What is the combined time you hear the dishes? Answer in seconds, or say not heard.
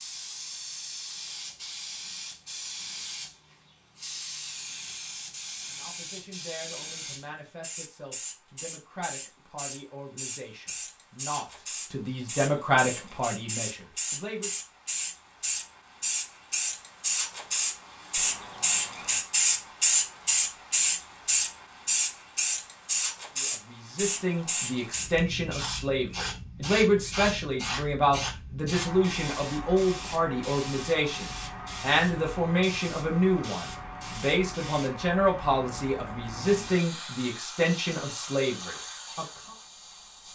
not heard.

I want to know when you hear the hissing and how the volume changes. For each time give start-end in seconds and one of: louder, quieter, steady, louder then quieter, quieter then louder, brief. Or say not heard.
0.0-40.3 louder then quieter.